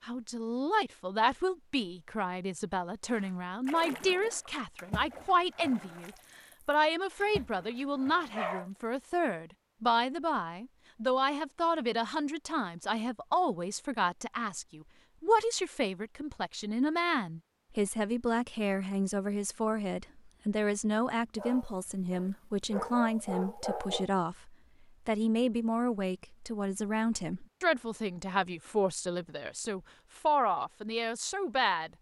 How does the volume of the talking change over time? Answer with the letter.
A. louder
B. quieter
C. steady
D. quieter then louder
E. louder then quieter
C.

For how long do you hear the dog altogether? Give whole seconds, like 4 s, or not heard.
4 s.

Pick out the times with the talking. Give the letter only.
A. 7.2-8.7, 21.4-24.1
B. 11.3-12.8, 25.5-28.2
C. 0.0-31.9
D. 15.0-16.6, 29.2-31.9
C.